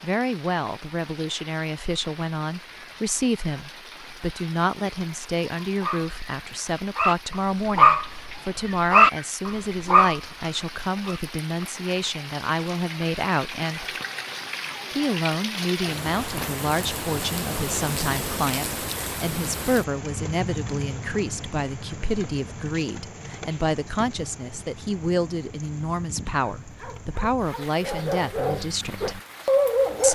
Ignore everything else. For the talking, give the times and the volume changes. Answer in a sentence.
The talking can be heard from 0.0 to 13.8 s, at a steady volume; and from 14.9 to 29.2 s, at a steady volume.